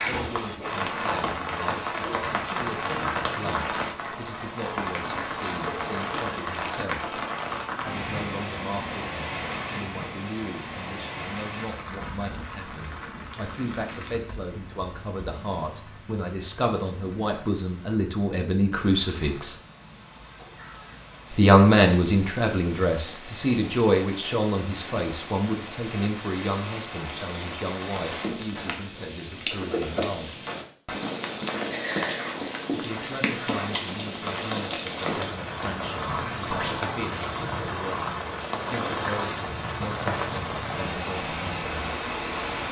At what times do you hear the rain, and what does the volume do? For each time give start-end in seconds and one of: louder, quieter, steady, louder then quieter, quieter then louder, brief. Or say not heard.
0.0-42.6 quieter then louder.